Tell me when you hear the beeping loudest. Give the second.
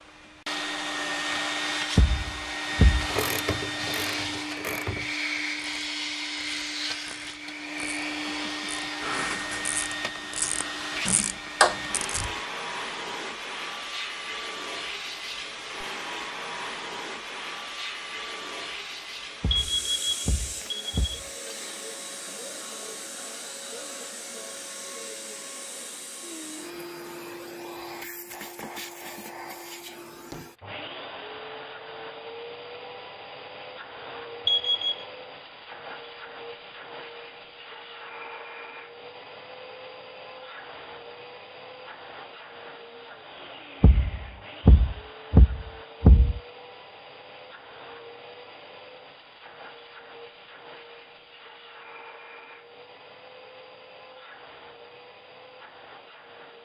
35 s.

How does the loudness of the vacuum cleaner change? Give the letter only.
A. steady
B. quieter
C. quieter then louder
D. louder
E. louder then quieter
B.